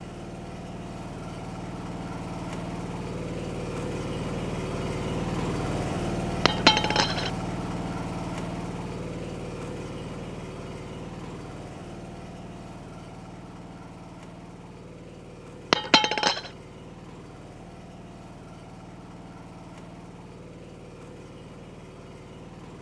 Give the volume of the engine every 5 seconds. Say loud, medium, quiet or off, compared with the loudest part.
loud, loud, medium, quiet, quiet.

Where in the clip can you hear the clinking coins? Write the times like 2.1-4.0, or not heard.
6.5-7.3, 15.7-16.5.